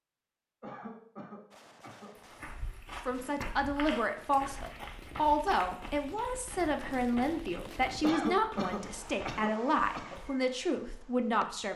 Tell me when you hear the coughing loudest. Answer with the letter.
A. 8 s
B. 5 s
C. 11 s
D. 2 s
A.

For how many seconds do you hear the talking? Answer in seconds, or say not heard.
9 s.